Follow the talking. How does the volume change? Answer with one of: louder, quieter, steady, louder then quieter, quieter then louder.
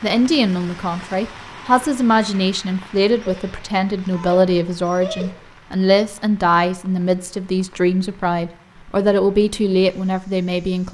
steady.